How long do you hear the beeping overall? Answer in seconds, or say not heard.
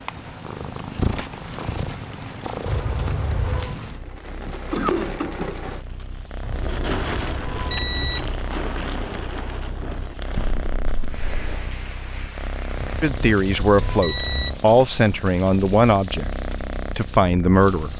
5 s.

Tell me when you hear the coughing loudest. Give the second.
5 s.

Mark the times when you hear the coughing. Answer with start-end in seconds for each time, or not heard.
4.4-5.5, 10.3-11.7.